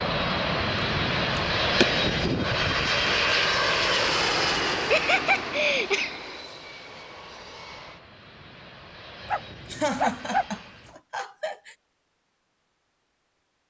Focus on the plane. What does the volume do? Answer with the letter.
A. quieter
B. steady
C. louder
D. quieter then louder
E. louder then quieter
A.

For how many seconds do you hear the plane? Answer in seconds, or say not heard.
11 s.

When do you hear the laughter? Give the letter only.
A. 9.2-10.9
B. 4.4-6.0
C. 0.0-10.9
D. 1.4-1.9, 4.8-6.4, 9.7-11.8
D.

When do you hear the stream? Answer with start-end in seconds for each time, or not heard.
not heard.